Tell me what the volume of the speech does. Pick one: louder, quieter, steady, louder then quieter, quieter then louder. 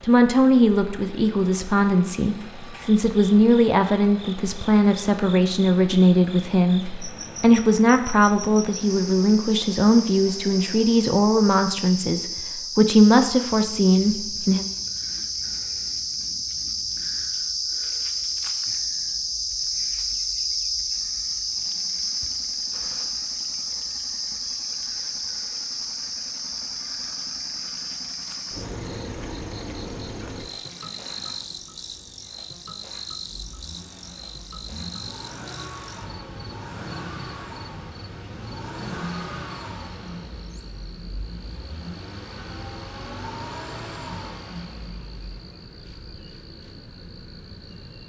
steady.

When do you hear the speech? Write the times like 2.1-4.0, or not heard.
0.0-14.7.